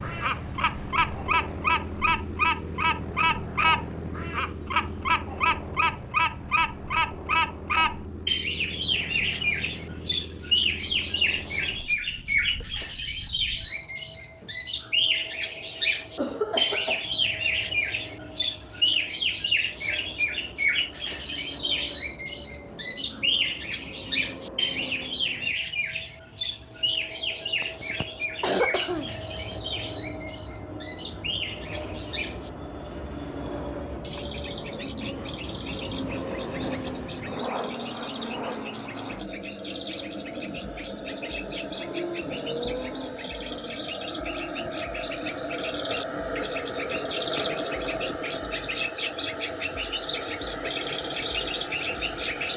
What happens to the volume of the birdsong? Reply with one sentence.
The volume of the birdsong goes down, then up.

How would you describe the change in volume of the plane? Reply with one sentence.
The loudness of the plane goes down, then up.